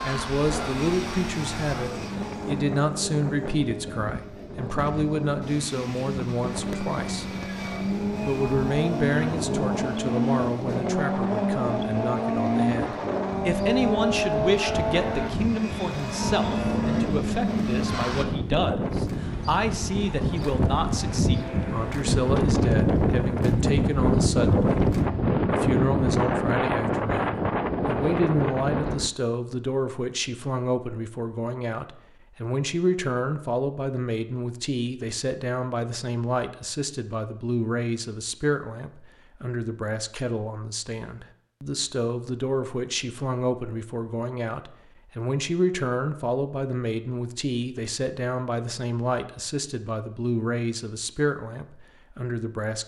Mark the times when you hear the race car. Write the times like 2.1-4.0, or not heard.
0.0-18.2.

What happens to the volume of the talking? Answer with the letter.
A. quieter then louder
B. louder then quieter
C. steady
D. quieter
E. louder
C.